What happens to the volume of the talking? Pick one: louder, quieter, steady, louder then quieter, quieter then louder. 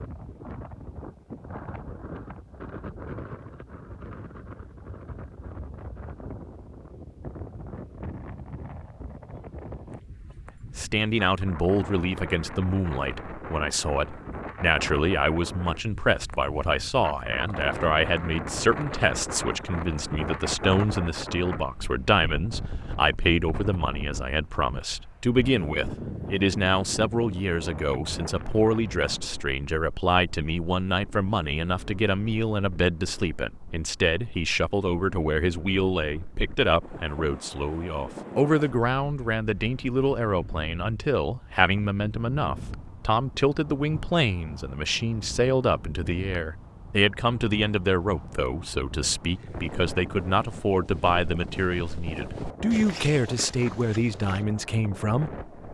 steady.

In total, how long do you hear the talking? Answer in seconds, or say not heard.
45 s.